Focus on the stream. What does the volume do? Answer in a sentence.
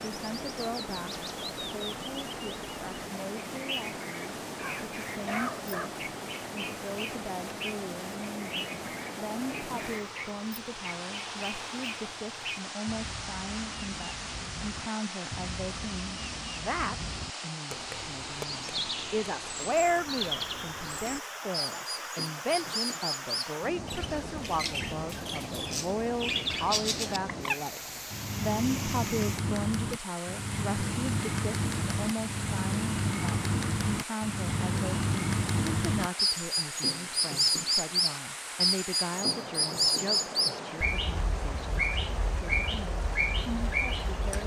The loudness of the stream stays about the same.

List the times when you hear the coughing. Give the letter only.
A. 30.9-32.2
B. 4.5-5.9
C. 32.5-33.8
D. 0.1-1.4
B.